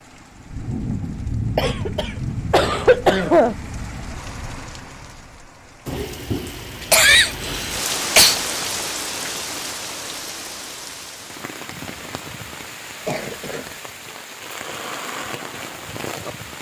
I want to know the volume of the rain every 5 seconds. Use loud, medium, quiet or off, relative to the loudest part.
loud, loud, medium, loud.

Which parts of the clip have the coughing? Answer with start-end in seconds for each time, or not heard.
1.6-3.5, 6.9-8.3, 13.1-13.7.